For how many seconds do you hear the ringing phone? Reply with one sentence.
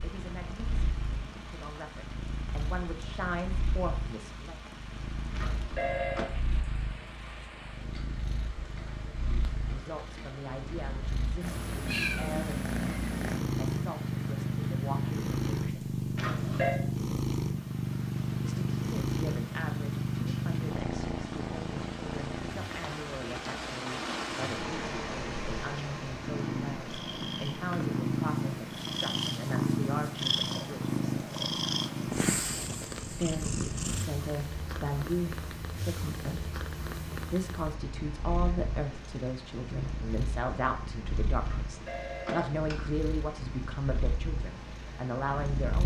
The ringing phone can be heard for 3 seconds in total.